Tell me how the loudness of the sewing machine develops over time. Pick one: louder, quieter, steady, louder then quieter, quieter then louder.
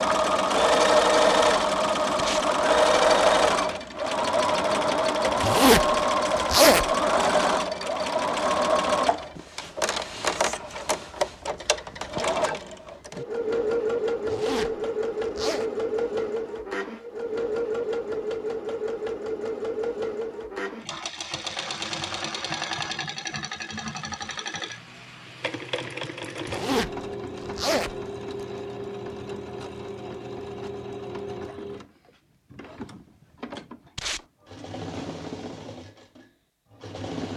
quieter.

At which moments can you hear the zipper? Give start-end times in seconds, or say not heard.
5.4-6.9, 14.2-15.7, 26.4-28.4.